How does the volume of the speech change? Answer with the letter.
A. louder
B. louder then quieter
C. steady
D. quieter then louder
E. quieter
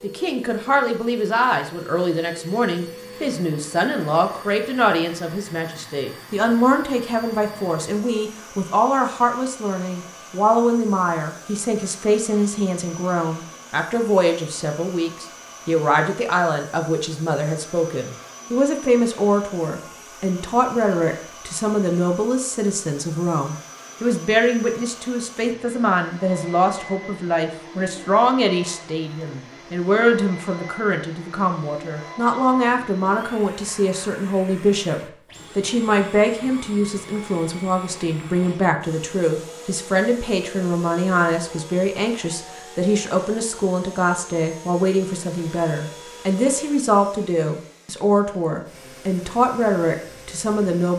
C.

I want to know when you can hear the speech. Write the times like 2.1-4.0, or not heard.
0.0-50.9.